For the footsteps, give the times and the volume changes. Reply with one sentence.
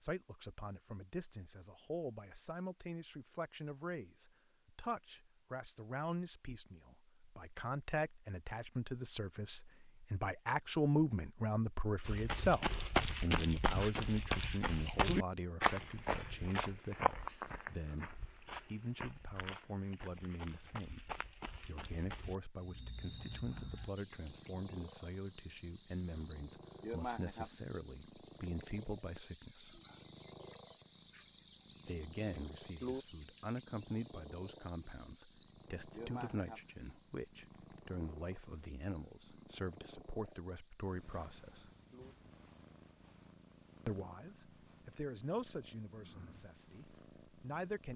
You can hear the footsteps from 12.1 to 22.4 s, getting quieter.